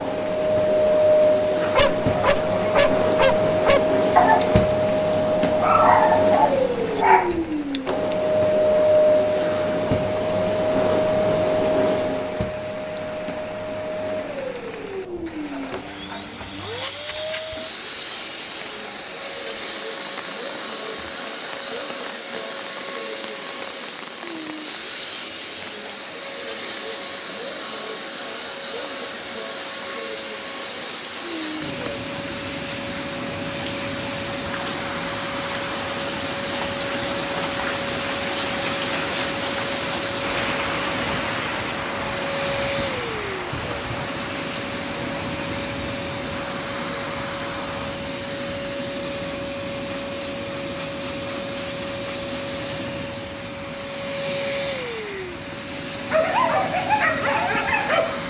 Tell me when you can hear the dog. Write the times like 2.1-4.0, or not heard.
1.6-8.2, 56.1-58.2.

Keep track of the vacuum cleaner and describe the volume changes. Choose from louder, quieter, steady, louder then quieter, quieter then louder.
quieter.